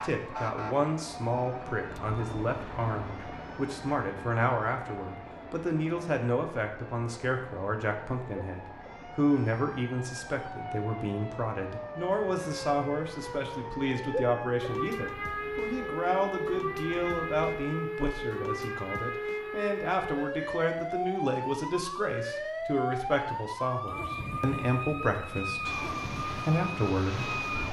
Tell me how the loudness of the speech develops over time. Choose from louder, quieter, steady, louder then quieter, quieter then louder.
steady.